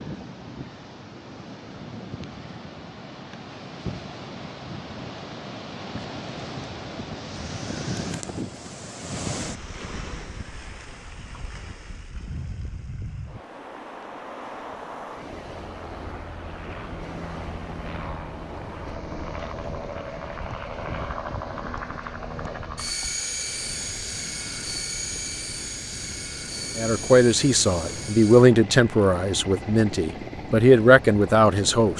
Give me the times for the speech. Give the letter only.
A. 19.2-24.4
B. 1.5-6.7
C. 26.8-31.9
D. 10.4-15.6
C.